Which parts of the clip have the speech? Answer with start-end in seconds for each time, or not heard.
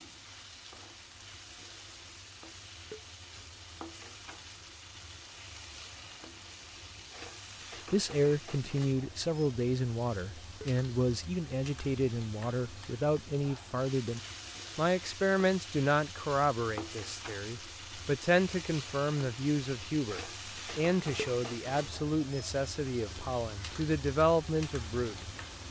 7.9-25.3.